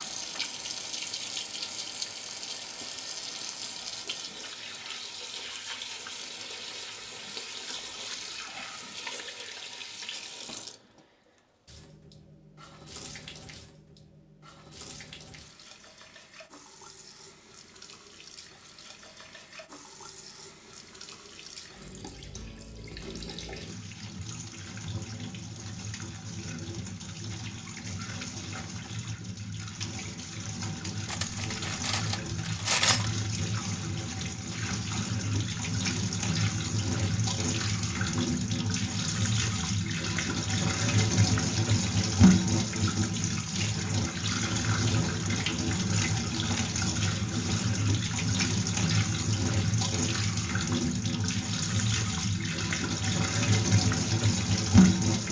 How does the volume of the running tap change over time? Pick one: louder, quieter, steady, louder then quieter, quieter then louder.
quieter then louder.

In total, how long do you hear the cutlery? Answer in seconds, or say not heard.
2 s.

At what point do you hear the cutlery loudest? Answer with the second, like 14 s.
33 s.